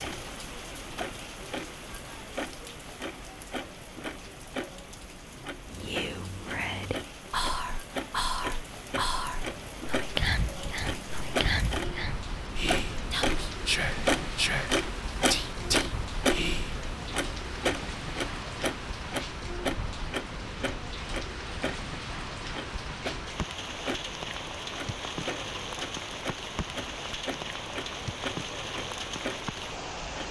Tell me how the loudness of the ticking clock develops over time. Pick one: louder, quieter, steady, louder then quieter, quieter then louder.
louder then quieter.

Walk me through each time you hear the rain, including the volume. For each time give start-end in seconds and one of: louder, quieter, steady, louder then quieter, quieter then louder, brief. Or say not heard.
0.0-30.2 louder.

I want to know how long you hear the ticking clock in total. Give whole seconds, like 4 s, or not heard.
30 s.